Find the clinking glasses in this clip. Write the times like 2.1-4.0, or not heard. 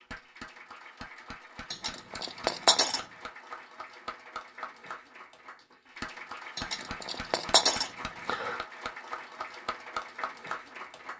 1.7-3.0, 6.5-8.6.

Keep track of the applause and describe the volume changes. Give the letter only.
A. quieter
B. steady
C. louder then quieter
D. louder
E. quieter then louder
D.